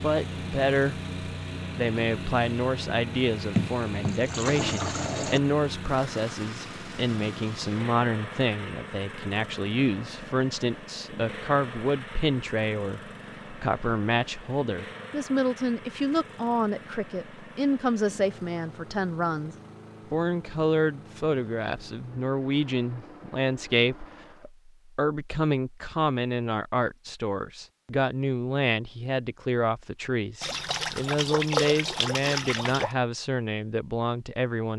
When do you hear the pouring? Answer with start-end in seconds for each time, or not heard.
3.5-5.4, 30.4-32.9.